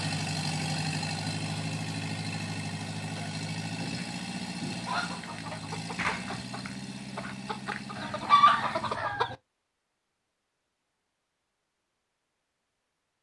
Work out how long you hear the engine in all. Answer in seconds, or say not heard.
9 s.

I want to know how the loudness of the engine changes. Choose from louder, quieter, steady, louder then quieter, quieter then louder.
quieter.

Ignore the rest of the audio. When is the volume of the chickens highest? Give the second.
8 s.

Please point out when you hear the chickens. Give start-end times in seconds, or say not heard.
3.8-9.3.